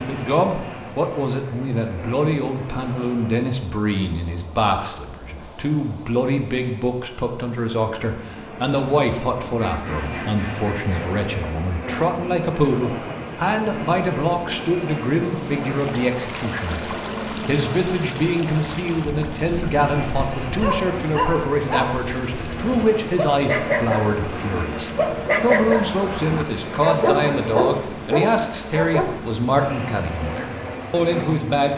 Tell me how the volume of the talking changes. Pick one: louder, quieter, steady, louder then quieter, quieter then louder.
steady.